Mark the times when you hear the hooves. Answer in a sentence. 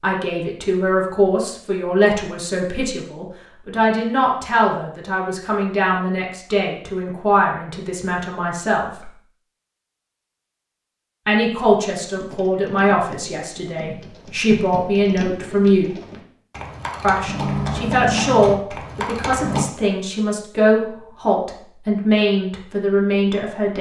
You can hear the hooves from 11.8 to 19.6 s.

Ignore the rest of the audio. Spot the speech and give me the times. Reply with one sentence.
You can hear the speech from 0.0 to 9.1 s, from 11.2 to 15.9 s and from 17.0 to 23.7 s.